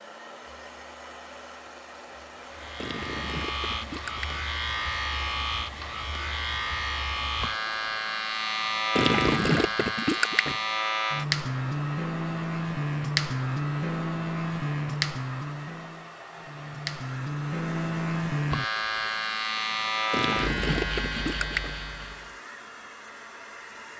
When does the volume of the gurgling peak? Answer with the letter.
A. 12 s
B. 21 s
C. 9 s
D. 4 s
C.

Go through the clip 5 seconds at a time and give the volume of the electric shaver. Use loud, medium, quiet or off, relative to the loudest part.
medium, loud, loud, loud, loud.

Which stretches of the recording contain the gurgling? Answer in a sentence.
You can hear the gurgling from 2.8 to 4.4 s, from 8.9 to 10.6 s and from 20.1 to 21.8 s.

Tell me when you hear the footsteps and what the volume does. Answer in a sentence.
You can't hear the footsteps here.